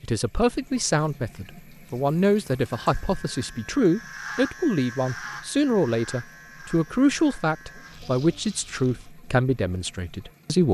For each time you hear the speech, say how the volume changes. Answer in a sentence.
You can hear the speech from 0.0 to 10.6 s, at a steady volume.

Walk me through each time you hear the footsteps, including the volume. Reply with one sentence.
The footsteps can't be heard in this clip.